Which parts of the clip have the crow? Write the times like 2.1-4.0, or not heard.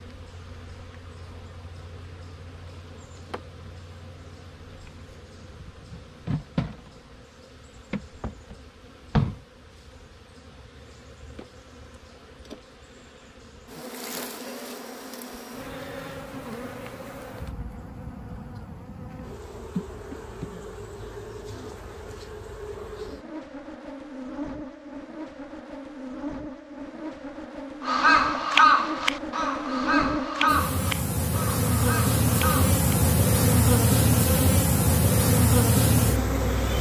27.8-32.8.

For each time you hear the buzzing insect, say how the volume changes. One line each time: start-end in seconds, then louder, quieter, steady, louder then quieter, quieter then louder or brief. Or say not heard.
0.0-36.7 louder.